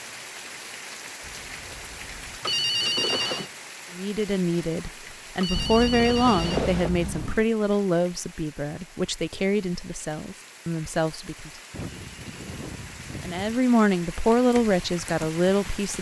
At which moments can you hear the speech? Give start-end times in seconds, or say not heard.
4.0-11.5, 13.2-15.9.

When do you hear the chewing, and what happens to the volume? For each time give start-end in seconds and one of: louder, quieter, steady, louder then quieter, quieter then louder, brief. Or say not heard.
not heard.